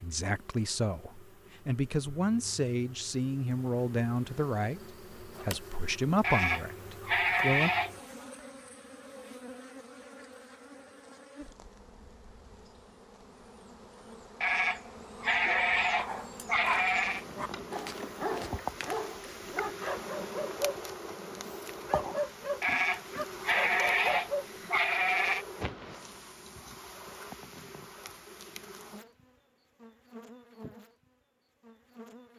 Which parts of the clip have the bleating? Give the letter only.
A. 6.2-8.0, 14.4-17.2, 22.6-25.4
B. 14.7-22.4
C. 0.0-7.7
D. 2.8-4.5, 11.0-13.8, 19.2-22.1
A.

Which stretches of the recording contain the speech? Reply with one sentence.
The speech can be heard from 0.0 to 7.7 s.